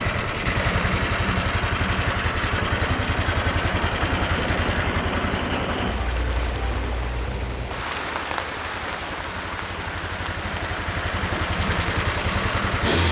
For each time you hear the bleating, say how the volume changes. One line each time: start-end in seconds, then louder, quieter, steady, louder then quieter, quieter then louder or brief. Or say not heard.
not heard.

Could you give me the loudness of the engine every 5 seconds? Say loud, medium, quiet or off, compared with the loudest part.
loud, medium, loud.